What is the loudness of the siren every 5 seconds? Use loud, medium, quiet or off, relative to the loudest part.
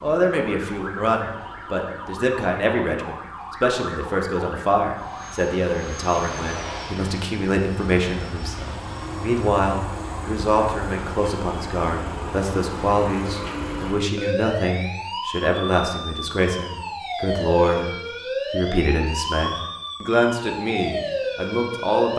medium, medium, loud, loud, loud.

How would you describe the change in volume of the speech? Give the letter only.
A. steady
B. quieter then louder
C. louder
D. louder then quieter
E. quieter
A.